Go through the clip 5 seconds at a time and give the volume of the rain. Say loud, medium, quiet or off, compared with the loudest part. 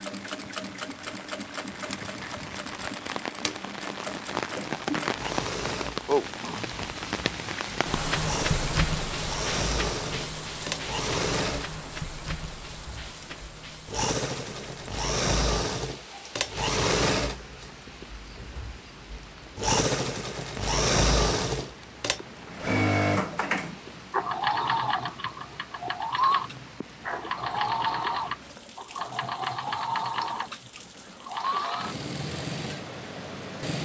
medium, loud, medium, quiet, quiet, quiet, quiet.